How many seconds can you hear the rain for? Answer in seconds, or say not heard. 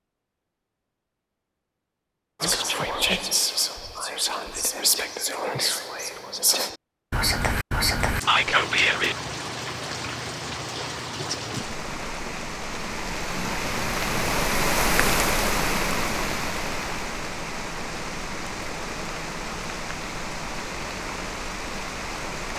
14 s.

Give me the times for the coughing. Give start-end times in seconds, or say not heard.
not heard.